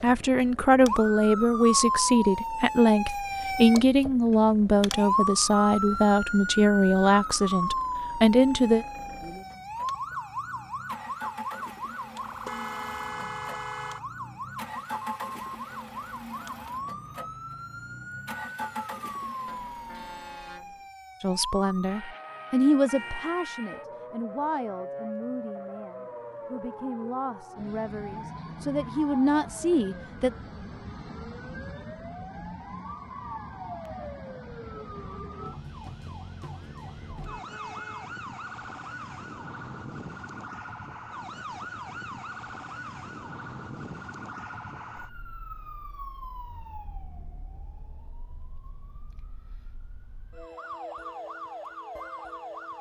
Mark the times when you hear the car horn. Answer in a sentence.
The car horn can be heard from 12.4 to 14.0 s, from 19.4 to 20.9 s and from 37.2 to 38.1 s.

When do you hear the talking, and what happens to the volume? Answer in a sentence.
You can hear the talking from 0.0 to 8.8 s, at a steady volume; and from 21.2 to 30.3 s, getting quieter then louder.